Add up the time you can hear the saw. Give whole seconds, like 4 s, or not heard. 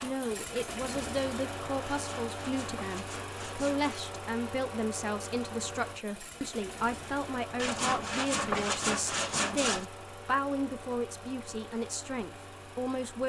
4 s.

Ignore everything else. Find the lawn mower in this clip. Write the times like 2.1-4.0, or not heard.
0.0-13.2.